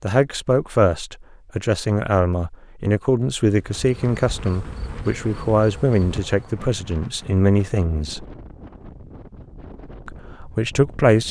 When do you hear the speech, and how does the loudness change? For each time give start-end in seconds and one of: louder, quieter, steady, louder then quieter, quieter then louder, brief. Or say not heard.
0.0-8.2 steady
10.1-11.2 brief.